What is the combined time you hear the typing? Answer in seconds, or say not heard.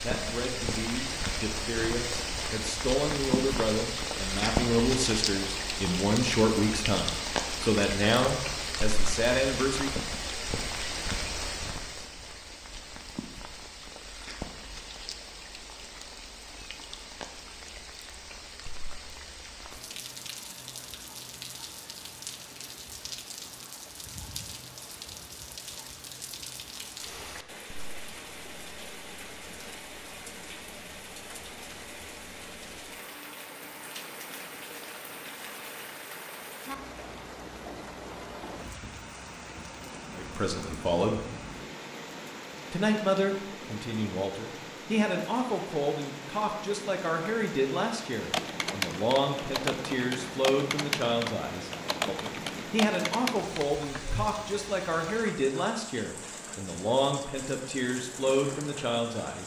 6 s.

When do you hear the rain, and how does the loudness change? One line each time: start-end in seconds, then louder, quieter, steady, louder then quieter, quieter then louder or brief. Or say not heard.
0.0-59.4 quieter.